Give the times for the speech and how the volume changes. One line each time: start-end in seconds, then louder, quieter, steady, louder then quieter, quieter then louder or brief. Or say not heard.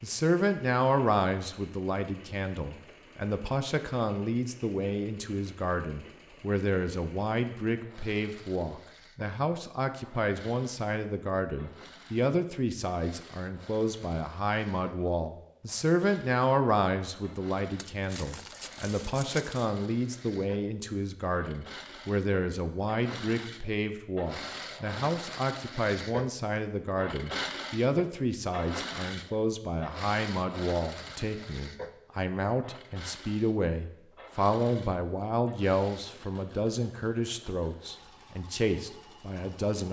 0.0-39.8 steady.